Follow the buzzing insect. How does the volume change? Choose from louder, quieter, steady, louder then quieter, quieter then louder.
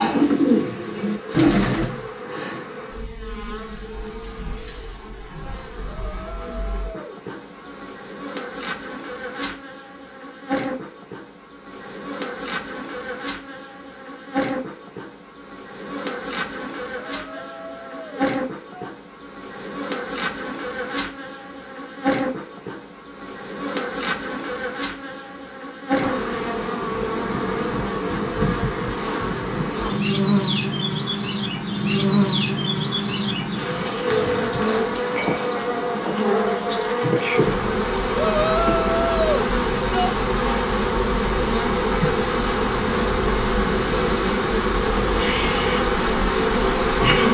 louder.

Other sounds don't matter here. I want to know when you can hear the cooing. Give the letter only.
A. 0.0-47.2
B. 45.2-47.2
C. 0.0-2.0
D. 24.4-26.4
C.